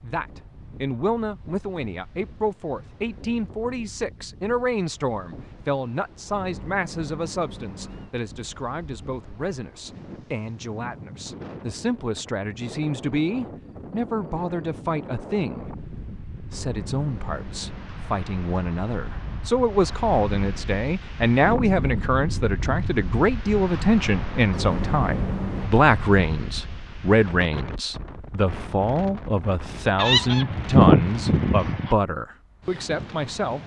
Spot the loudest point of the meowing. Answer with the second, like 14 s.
25 s.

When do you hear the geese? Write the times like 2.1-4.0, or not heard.
29.9-31.9.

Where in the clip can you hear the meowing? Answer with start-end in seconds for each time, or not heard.
6.3-8.2, 16.5-17.9, 24.5-25.7.